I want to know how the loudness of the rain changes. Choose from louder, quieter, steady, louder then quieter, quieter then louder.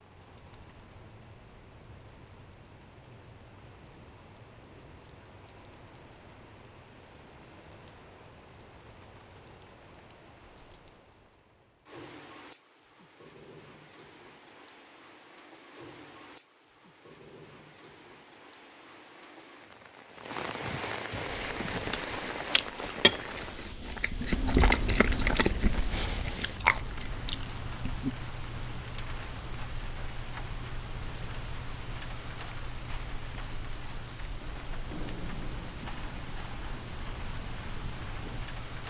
louder.